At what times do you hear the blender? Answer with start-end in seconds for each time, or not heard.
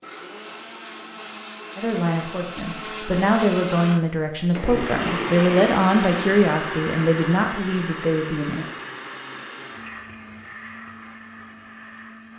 0.0-12.3.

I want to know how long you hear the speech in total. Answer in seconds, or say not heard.
7 s.